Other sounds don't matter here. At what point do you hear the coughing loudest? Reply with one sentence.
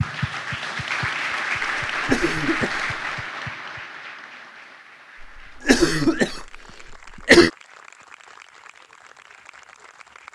The loudest moment of the coughing is at 7 seconds.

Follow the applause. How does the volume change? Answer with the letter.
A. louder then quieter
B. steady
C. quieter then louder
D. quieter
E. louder
D.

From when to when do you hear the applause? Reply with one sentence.
The applause can be heard from 0.0 to 10.2 s.